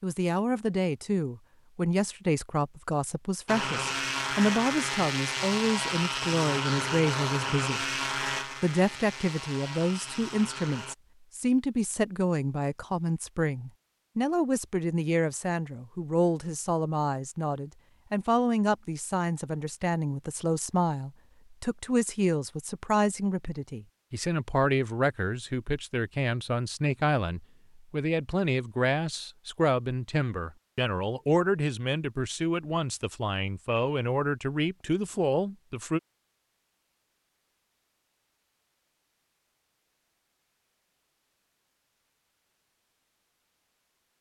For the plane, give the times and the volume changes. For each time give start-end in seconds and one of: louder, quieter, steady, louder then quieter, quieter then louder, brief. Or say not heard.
3.5-10.9 quieter.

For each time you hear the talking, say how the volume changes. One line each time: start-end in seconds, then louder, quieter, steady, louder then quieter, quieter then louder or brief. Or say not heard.
0.0-7.8 steady
8.6-36.0 steady.